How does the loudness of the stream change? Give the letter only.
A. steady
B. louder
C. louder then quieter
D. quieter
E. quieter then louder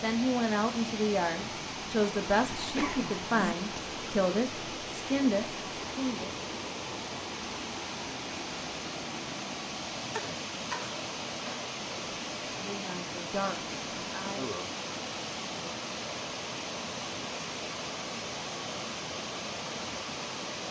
A.